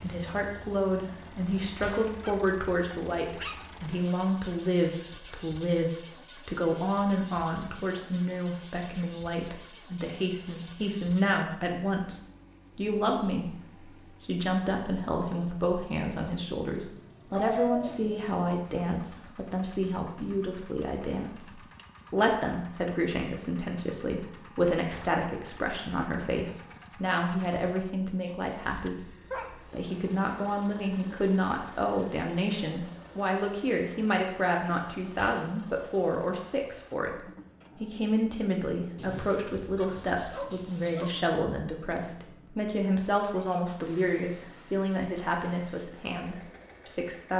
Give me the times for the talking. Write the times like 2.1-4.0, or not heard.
0.0-37.1, 37.8-47.3.